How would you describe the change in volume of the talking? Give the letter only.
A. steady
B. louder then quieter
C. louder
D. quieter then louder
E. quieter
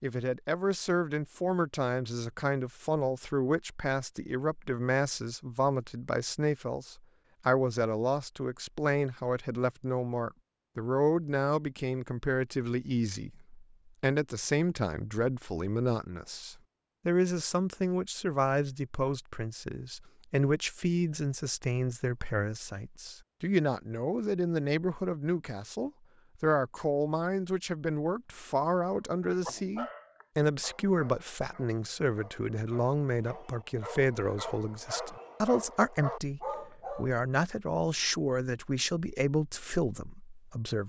A.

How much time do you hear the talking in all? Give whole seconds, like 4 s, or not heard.
41 s.